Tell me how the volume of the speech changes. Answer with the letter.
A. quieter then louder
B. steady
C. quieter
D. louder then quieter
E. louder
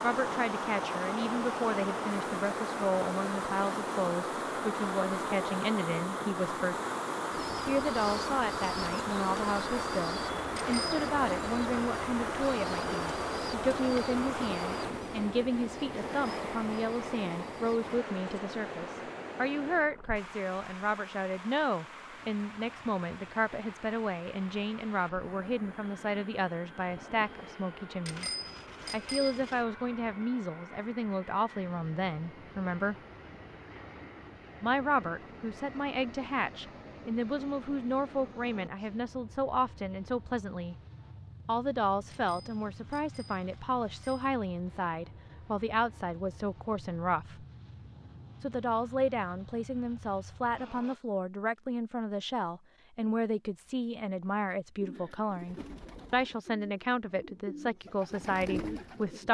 B.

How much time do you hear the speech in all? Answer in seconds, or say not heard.
54 s.